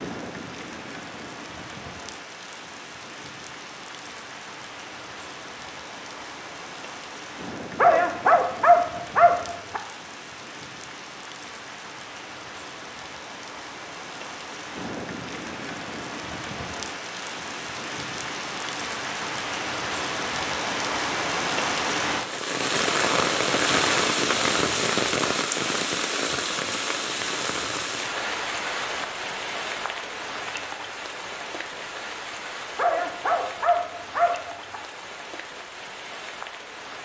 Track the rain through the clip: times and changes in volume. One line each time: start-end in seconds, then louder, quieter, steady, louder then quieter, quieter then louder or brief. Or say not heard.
0.0-37.0 louder then quieter.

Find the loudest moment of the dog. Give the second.
9 s.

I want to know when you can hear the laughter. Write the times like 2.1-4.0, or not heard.
not heard.